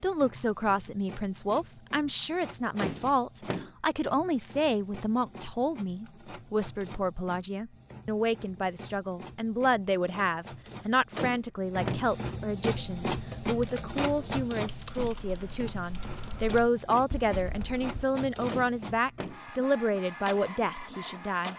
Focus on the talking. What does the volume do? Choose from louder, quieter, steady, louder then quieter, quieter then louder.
steady.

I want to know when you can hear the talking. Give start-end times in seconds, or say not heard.
0.0-21.5.